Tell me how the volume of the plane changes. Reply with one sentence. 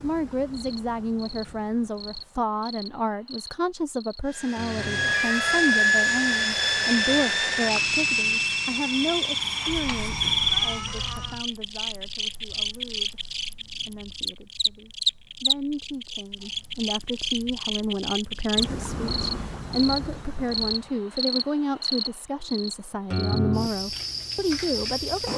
The loudness of the plane goes down.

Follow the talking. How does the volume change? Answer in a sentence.
The volume of the talking goes down, then up.